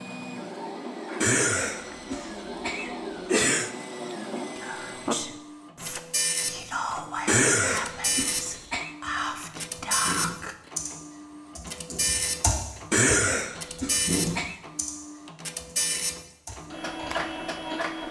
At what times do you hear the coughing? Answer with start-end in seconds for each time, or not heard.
1.2-3.7, 7.2-8.9, 12.9-14.6.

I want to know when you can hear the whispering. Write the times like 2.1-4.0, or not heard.
4.5-10.6.